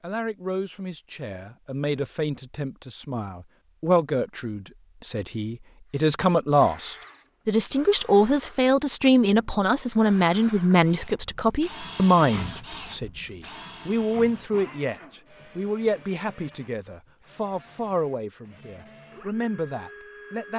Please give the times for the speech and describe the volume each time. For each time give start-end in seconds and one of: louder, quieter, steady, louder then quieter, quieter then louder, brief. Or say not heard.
0.0-20.5 louder then quieter.